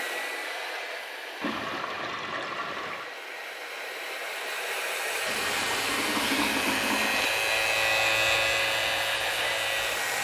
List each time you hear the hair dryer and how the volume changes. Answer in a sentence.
You can hear the hair dryer from 0.0 to 10.1 s, getting louder.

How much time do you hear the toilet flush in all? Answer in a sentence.
The toilet flush can be heard for 4 seconds in total.